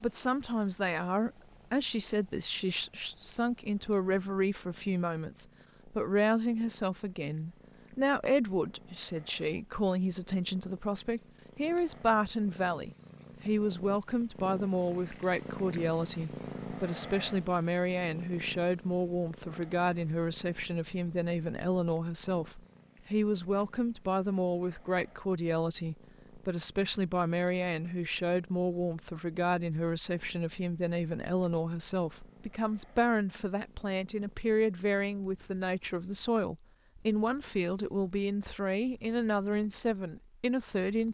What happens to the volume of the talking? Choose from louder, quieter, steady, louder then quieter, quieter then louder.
steady.